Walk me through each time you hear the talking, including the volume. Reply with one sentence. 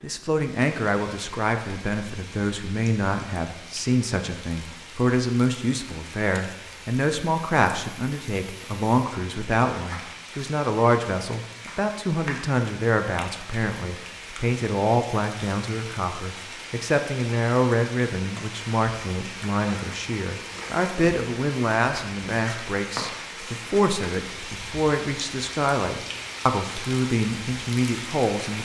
You can hear the talking from 0.0 to 28.6 s, at a steady volume.